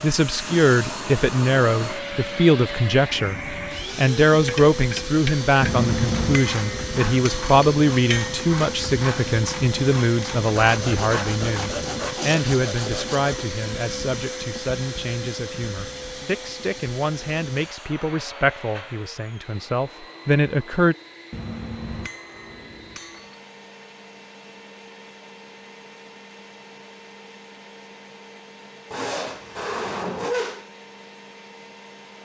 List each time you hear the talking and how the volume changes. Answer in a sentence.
You can hear the talking from 0.0 to 20.9 s, getting quieter.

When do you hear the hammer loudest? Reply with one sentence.
The volume of the hammer peaks at 6 seconds.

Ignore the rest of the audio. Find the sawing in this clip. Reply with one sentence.
The sawing can be heard from 10.6 to 13.5 s and from 28.9 to 30.6 s.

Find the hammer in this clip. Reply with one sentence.
You can hear the hammer from 5.6 to 8.4 s and from 21.3 to 23.4 s.